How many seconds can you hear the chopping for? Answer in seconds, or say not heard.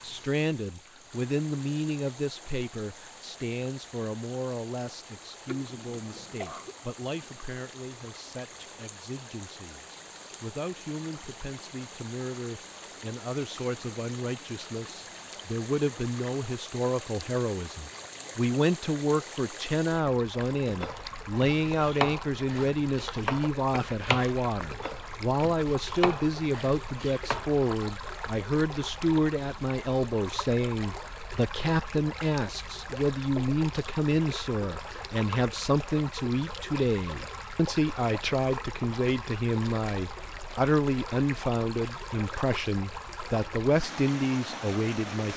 7 s.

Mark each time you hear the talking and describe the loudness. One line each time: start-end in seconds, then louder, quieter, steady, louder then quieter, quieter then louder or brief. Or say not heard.
0.0-45.3 louder.